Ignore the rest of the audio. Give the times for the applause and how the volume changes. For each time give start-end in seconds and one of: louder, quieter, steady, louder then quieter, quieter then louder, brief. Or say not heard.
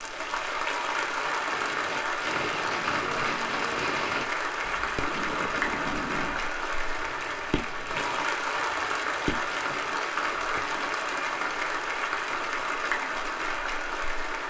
0.0-14.4 steady.